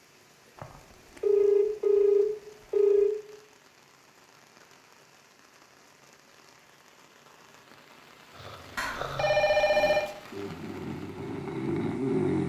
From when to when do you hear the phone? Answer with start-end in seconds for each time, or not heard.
0.6-3.1, 8.8-10.1.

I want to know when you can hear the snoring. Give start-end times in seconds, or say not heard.
8.3-12.4.